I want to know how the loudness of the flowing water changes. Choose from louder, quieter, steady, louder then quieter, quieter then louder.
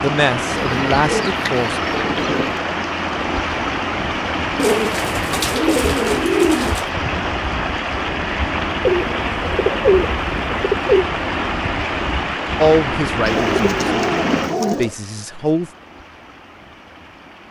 quieter.